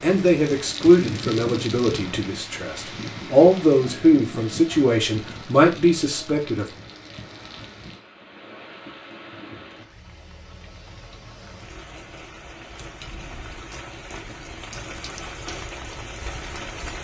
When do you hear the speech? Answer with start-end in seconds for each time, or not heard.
0.0-6.7.